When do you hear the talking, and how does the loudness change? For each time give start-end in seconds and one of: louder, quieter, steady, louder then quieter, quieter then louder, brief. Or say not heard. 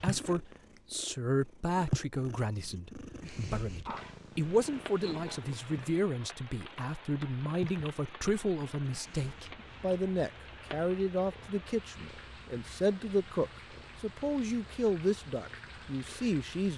0.0-16.7 steady.